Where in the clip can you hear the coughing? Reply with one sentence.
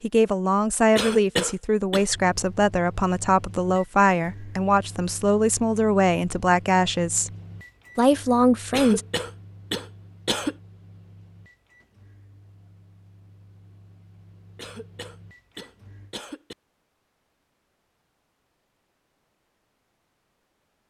You can hear the coughing from 0.9 to 2.0 s, from 8.7 to 10.6 s and from 14.6 to 16.6 s.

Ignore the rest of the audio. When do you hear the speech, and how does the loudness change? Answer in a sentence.
The speech can be heard from 0.0 to 7.3 s, at a steady volume; and briefly from 8.0 to 9.0 s.